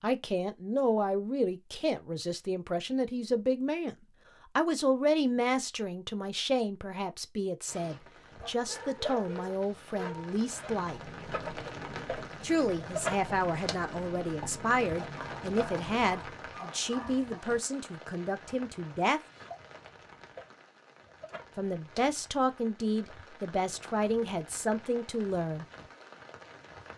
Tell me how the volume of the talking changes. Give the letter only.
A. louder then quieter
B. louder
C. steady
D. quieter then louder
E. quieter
C.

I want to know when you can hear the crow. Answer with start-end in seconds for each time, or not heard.
not heard.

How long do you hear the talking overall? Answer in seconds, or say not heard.
21 s.